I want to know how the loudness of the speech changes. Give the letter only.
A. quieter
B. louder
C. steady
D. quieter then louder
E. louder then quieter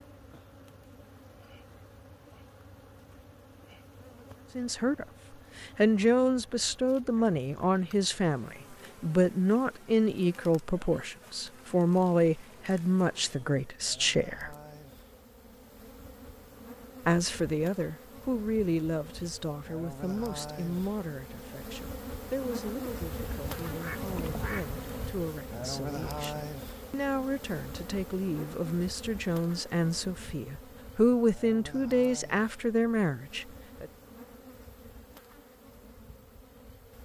D.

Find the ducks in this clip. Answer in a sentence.
You can hear the ducks from 23.1 to 25.1 s.